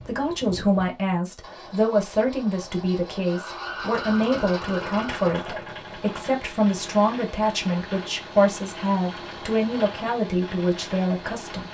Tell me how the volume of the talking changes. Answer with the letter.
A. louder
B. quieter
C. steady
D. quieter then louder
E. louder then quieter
C.